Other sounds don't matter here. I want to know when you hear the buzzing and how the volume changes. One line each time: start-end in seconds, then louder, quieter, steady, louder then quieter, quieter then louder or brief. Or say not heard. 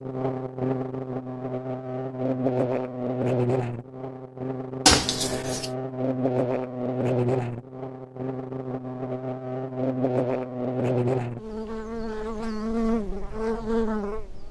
0.0-14.4 steady.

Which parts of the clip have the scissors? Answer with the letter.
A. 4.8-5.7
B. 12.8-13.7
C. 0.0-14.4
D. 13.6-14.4
A.